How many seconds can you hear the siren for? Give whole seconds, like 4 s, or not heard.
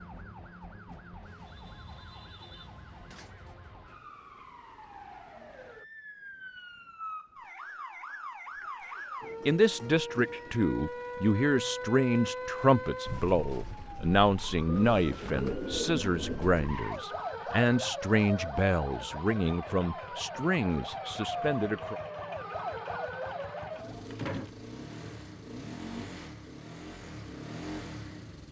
24 s.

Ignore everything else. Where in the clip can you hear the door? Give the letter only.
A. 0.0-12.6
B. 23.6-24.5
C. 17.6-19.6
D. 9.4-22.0
B.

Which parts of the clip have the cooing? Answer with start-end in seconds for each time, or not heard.
14.7-16.6.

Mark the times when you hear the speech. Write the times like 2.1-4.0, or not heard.
9.4-22.0.